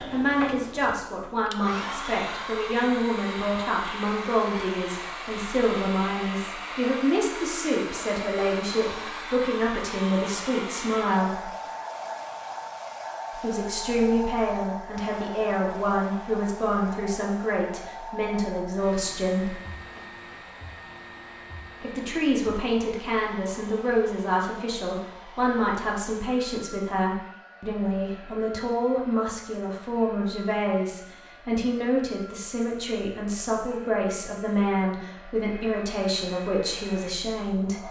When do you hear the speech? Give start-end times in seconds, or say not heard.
0.1-11.5, 13.3-19.6, 21.8-37.8.